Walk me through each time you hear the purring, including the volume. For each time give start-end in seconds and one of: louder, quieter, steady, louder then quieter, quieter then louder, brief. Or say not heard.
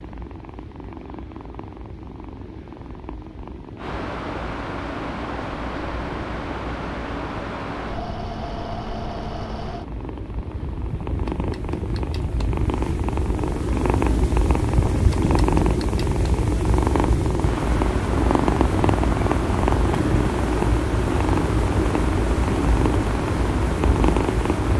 0.0-24.7 louder.